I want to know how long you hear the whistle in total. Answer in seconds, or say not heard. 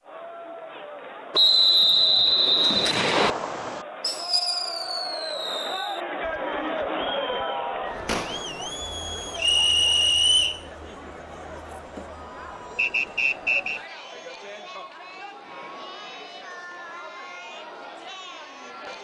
4 s.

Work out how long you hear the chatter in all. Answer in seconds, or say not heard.
19 s.